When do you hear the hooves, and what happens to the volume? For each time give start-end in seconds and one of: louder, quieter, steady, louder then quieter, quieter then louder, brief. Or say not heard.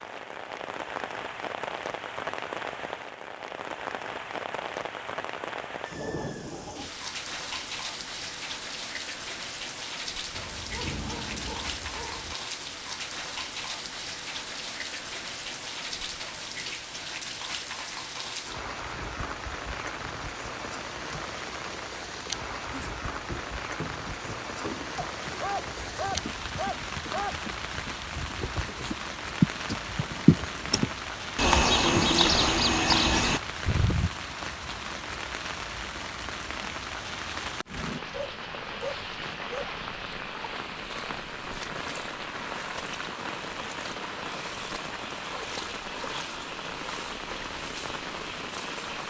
22.6-34.1 louder.